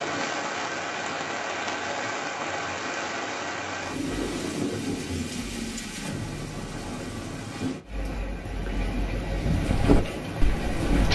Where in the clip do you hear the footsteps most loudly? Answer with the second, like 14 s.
10 s.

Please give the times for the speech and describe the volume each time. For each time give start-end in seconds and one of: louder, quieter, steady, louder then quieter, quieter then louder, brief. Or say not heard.
not heard.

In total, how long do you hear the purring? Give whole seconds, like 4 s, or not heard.
not heard.